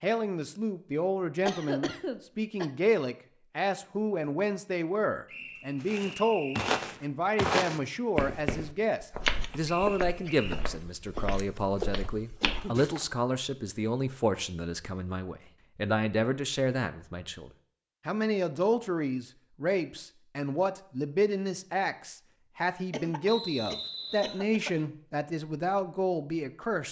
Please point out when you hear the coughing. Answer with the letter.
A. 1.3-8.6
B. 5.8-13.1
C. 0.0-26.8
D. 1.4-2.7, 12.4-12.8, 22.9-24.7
D.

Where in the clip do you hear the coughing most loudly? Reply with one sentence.
The volume of the coughing peaks at 2 seconds.